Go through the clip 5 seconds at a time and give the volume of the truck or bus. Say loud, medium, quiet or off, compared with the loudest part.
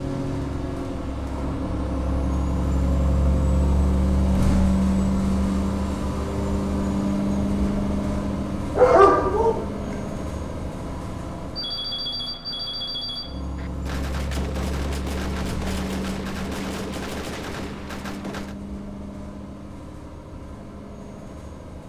loud, loud, medium, medium, quiet.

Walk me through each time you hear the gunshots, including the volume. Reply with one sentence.
The gunshots can be heard from 13.6 to 18.6 s, at a steady volume.